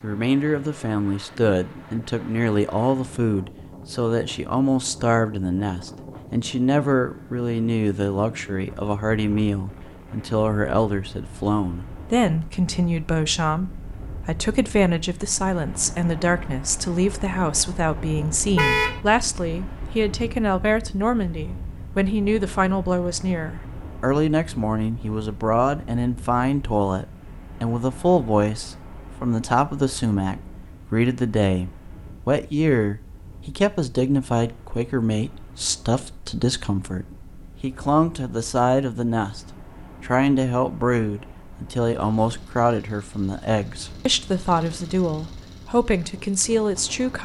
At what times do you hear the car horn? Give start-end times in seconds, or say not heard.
18.6-19.0.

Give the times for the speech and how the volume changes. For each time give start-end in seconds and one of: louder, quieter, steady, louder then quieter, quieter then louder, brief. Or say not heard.
0.0-39.4 steady
40.0-47.1 steady.